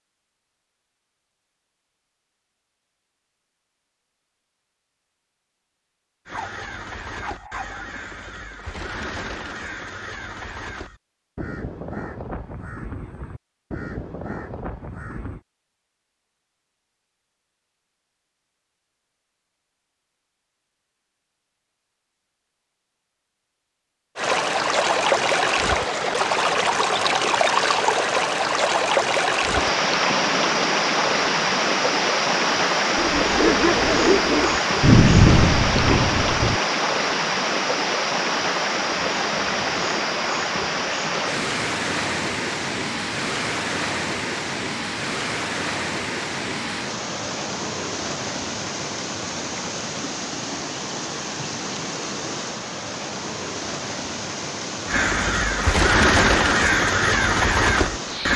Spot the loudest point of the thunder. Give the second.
35 s.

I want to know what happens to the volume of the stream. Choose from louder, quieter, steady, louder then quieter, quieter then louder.
quieter.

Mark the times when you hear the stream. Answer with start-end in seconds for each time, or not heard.
24.1-58.3.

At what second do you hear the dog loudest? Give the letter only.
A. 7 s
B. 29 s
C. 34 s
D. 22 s
C.